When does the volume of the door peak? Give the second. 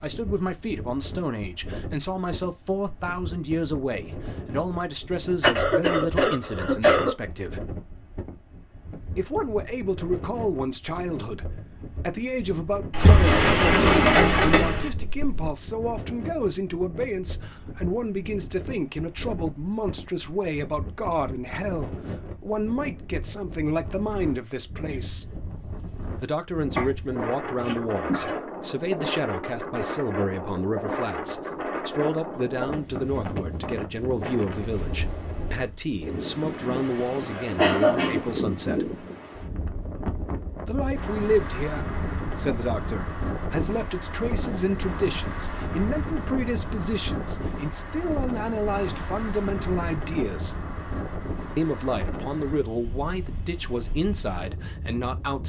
14 s.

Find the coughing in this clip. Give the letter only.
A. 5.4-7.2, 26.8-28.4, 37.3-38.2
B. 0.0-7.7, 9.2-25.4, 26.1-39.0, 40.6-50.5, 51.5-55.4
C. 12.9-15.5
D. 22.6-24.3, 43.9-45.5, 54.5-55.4
A.